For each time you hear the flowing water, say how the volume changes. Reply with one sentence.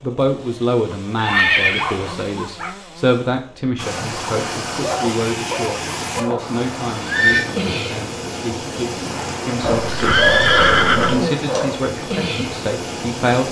The flowing water can be heard from 3.8 to 13.4 s, at a steady volume.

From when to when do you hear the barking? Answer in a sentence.
The barking can be heard from 0.9 to 2.8 s, from 4.8 to 6.6 s and from 9.6 to 11.8 s.